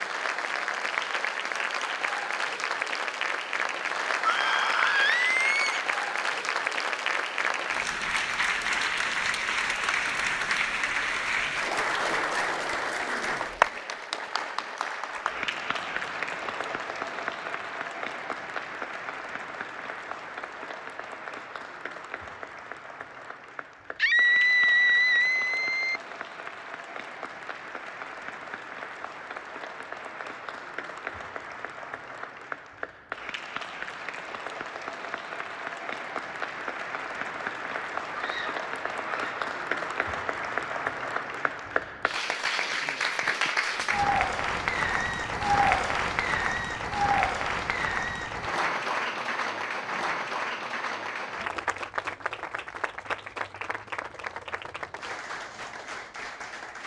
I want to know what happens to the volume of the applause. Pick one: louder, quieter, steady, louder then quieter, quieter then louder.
quieter then louder.